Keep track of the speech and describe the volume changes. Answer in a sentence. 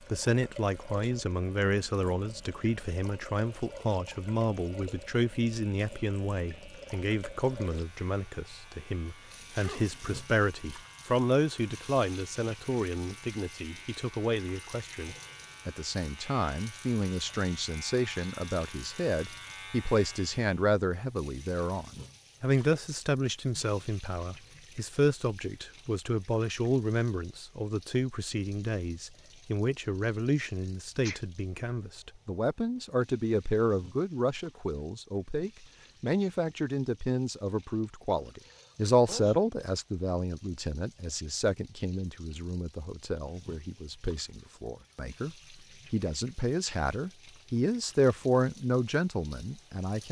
The volume of the speech stays about the same.